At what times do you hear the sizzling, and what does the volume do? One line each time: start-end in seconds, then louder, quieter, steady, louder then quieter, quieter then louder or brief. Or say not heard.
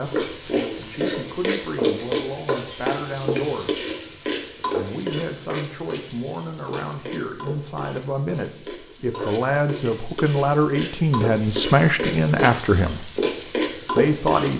0.0-14.5 quieter then louder.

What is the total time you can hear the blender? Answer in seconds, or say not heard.
not heard.